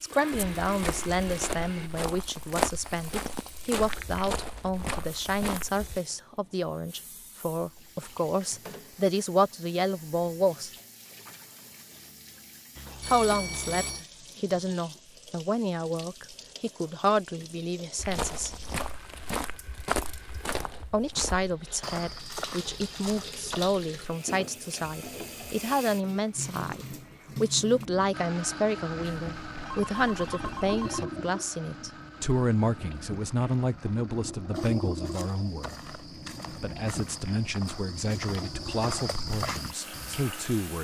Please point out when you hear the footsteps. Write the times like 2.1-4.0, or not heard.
0.3-6.0, 17.9-23.7, 34.5-40.2.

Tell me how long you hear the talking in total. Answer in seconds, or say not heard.
36 s.